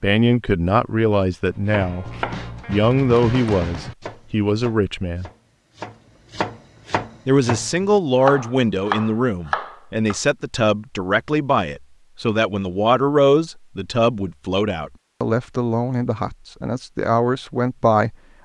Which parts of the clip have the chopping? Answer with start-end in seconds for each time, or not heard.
1.6-10.2.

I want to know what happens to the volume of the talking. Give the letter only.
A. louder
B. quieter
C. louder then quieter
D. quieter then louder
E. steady
E.